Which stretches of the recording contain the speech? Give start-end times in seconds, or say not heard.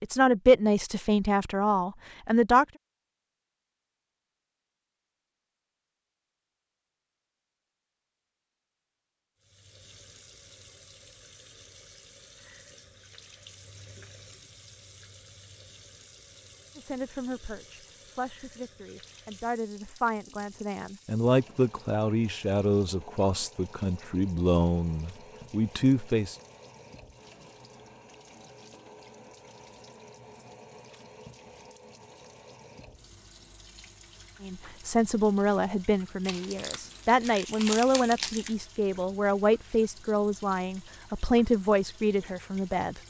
0.0-2.6, 16.8-26.4, 34.4-43.0.